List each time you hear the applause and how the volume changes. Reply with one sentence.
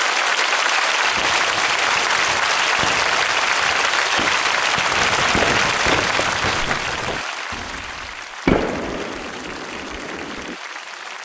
You can hear the applause from 0.0 to 11.1 s, getting quieter.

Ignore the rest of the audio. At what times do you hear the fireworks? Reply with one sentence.
The fireworks can be heard from 1.0 to 10.6 s.